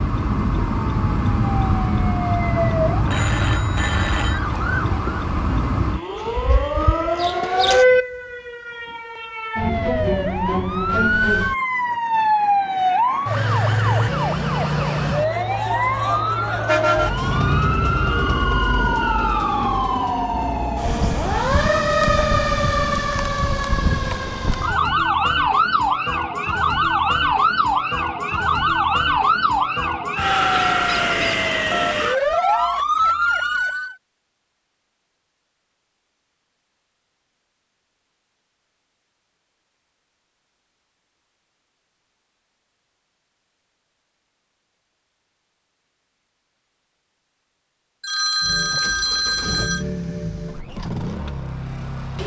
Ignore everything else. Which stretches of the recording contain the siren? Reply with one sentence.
The siren can be heard from 0.0 to 34.0 s.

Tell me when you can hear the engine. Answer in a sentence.
The engine can be heard from 48.4 to 52.2 s.